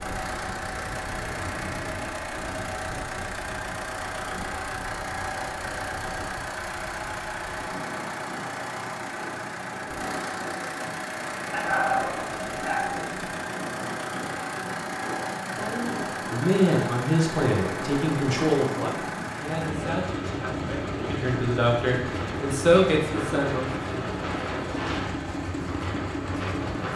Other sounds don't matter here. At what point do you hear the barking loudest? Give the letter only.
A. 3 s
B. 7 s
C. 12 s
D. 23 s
C.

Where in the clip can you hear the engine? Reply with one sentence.
You can hear the engine from 0.0 to 26.9 s.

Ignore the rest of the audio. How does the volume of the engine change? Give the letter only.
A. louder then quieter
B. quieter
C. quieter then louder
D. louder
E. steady
E.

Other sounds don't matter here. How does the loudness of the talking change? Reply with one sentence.
The loudness of the talking goes down, then up.